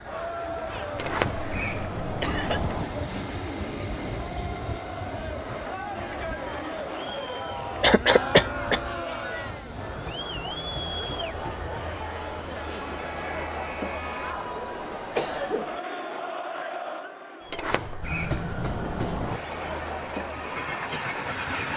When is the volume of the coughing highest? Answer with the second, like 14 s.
8 s.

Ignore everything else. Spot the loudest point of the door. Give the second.
1 s.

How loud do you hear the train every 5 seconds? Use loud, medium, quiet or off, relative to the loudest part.
loud, medium, medium, loud, loud.